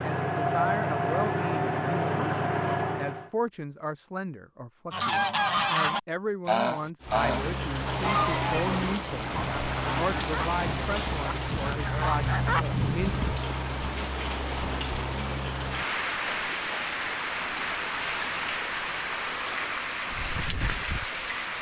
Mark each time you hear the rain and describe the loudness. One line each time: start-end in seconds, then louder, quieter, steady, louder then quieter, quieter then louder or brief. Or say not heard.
7.0-21.5 steady.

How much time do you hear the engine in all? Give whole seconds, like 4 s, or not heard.
3 s.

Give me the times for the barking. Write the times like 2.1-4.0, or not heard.
not heard.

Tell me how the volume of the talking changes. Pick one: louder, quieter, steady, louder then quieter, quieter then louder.
steady.